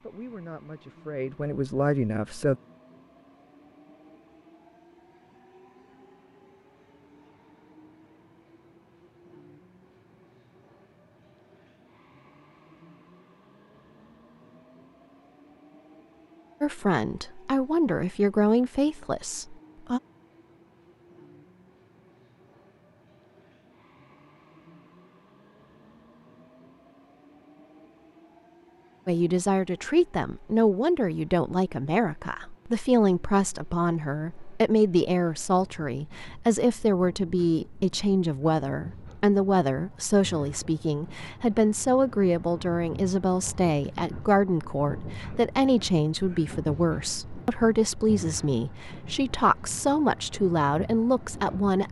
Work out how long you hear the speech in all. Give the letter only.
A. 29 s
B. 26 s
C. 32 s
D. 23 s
A.